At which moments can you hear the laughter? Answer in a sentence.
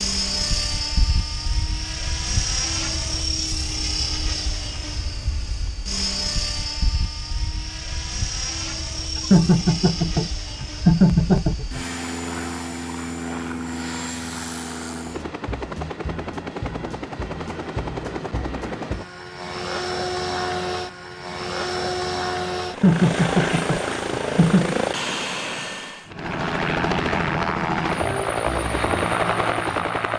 You can hear the laughter from 9.3 to 11.8 s and from 22.8 to 24.8 s.